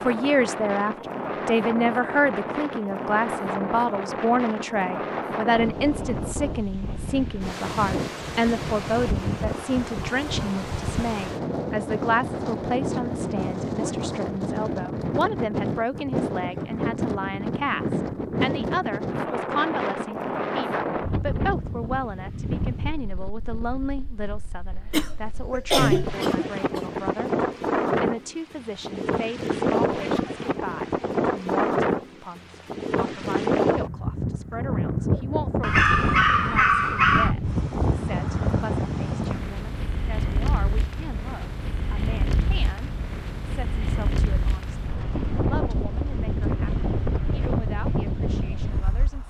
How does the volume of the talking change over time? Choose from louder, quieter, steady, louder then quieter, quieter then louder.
quieter.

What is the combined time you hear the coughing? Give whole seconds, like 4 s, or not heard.
2 s.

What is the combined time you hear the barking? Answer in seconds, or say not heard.
2 s.